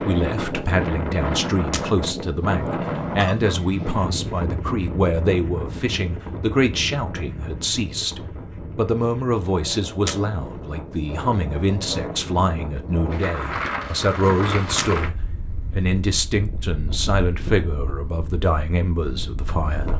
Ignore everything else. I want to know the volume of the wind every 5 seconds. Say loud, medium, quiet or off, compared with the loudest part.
loud, medium, loud, medium.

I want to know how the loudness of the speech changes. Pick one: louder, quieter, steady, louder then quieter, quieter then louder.
steady.